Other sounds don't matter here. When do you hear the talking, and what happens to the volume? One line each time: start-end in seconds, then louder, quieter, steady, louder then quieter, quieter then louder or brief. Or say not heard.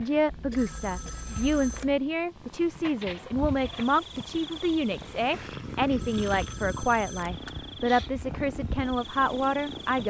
0.0-10.0 steady.